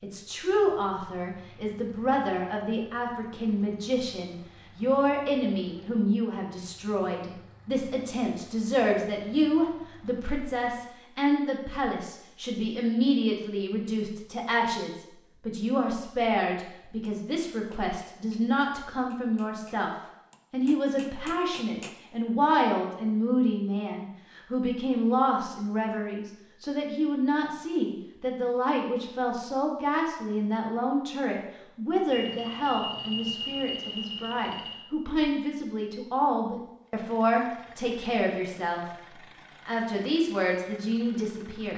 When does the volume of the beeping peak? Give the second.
33 s.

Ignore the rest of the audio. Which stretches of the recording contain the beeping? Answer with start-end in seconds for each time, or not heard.
32.0-34.9.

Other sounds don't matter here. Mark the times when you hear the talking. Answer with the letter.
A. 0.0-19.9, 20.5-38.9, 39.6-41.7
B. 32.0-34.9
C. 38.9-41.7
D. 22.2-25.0
A.